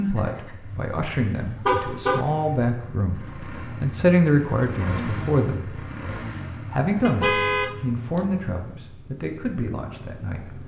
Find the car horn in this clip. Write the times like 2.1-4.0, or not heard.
0.7-2.2, 7.0-8.2.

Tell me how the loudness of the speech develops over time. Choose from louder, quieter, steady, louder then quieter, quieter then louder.
louder then quieter.